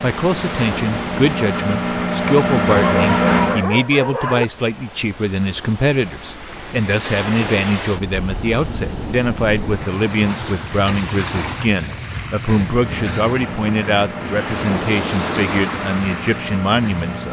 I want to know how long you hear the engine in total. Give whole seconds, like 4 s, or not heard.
8 s.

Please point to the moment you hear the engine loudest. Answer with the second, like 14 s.
3 s.